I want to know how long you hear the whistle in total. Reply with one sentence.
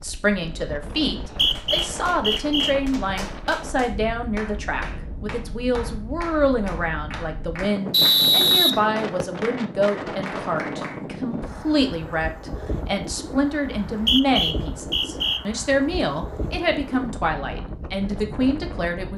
The whistle can be heard for 5 seconds in total.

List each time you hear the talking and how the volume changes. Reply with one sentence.
You can hear the talking from 0.0 to 19.1 s, at a steady volume.